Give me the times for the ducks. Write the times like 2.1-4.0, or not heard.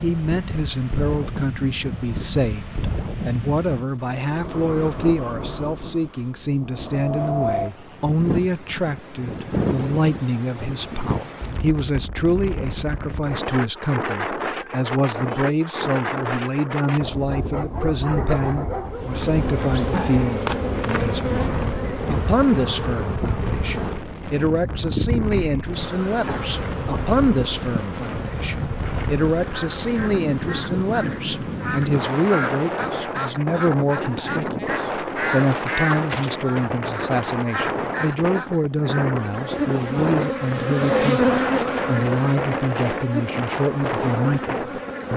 29.4-39.1.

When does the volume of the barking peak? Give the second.
18 s.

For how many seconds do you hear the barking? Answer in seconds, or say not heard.
3 s.